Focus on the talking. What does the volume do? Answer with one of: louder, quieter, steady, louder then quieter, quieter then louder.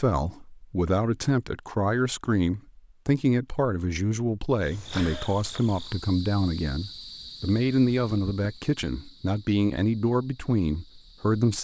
steady.